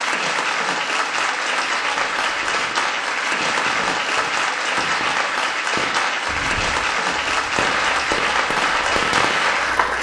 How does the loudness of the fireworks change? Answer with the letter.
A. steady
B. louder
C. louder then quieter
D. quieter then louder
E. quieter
B.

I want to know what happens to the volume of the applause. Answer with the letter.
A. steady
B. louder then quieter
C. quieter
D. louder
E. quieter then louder
A.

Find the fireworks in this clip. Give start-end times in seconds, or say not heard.
1.6-9.8.